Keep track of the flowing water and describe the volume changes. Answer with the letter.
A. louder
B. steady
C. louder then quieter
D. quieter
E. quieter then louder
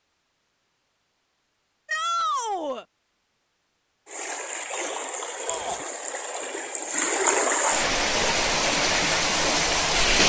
A.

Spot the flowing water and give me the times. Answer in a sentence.
You can hear the flowing water from 4.0 to 10.2 s.